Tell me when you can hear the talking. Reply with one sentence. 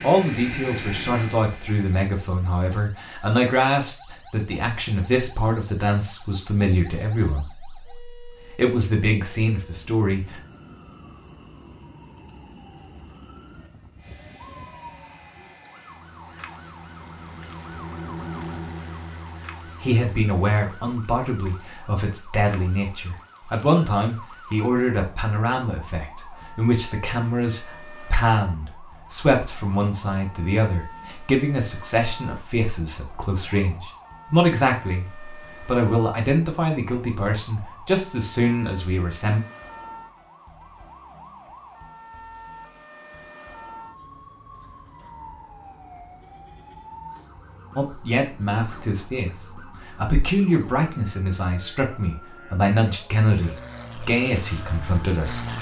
The talking can be heard from 0.0 to 10.4 s, from 19.8 to 39.4 s and from 47.8 to 55.5 s.